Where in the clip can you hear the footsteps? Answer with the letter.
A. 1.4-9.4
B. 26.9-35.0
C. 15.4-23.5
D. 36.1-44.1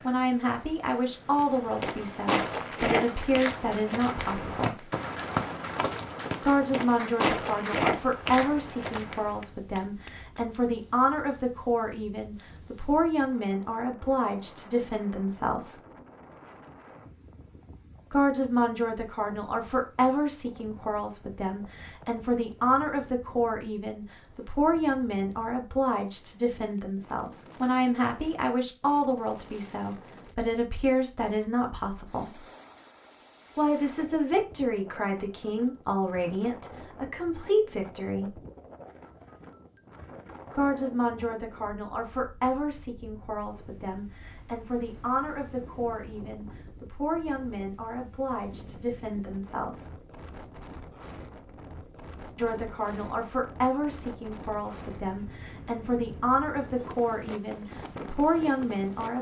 A.